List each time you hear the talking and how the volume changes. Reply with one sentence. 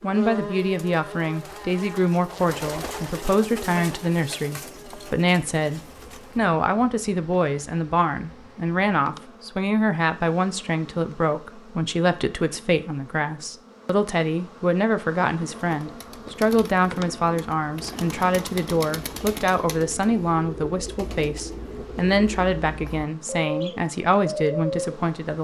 The talking can be heard from 0.0 to 25.3 s, at a steady volume.